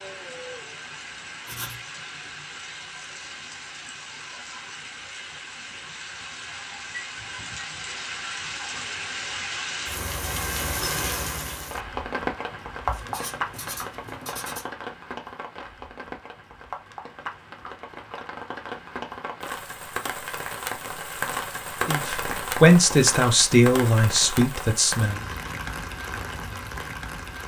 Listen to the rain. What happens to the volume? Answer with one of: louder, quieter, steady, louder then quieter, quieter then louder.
louder.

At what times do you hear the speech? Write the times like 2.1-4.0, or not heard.
21.9-25.2.